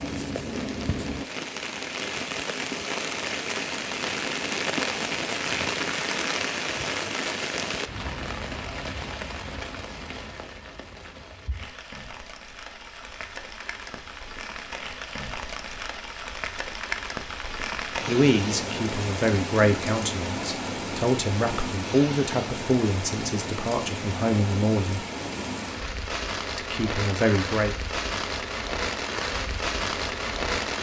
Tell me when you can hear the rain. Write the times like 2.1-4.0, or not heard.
0.0-30.7.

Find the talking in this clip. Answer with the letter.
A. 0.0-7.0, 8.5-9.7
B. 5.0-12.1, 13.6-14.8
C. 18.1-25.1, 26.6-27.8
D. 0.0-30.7
C.